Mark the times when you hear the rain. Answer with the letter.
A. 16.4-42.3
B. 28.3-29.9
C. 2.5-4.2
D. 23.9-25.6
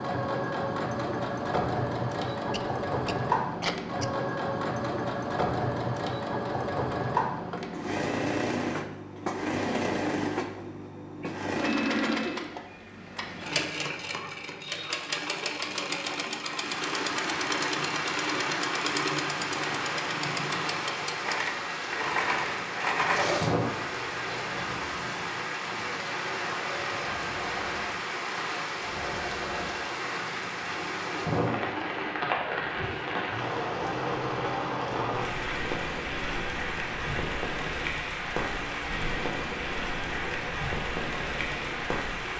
A.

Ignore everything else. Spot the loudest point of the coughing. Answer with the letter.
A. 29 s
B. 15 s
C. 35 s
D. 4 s
D.